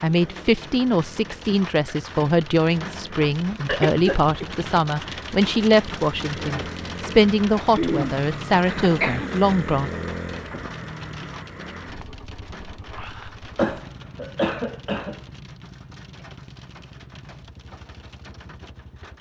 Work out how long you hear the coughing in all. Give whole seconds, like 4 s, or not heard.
4 s.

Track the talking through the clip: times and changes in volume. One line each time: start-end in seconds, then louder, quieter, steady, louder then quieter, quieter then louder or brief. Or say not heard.
0.0-9.9 steady.